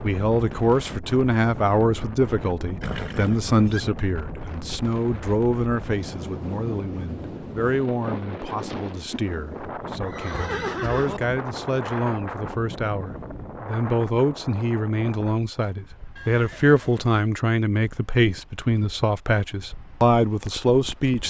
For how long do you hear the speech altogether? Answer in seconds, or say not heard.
21 s.